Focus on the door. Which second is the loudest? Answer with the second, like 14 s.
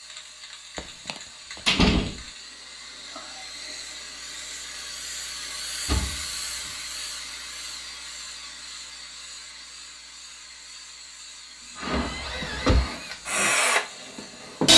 2 s.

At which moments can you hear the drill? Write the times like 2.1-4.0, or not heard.
11.8-14.7.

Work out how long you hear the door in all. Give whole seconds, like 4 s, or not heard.
3 s.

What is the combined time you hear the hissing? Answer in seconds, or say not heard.
15 s.